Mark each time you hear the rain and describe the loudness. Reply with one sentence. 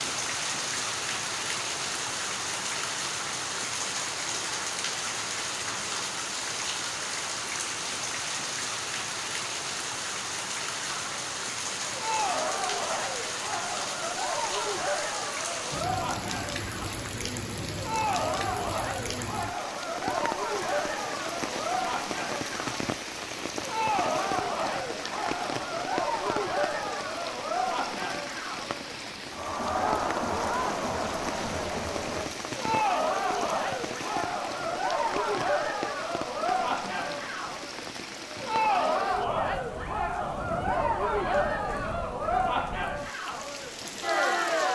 The rain can be heard from 0.0 to 44.7 s, getting quieter.